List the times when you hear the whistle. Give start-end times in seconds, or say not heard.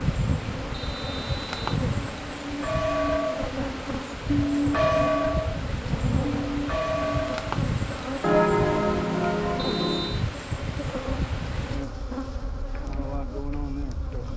0.7-1.6, 9.6-10.2.